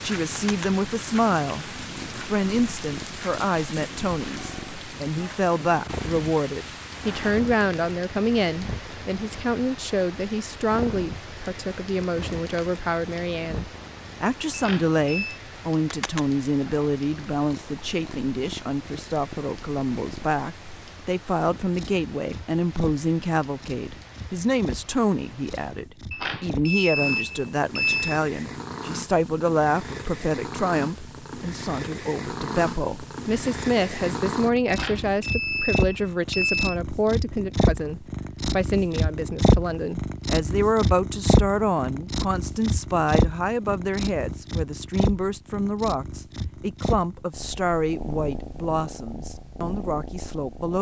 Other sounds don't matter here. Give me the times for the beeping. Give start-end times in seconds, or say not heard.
14.5-15.4, 26.1-28.2, 34.6-36.8.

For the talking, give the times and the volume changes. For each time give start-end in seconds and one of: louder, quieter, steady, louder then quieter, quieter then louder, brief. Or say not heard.
0.0-50.7 steady.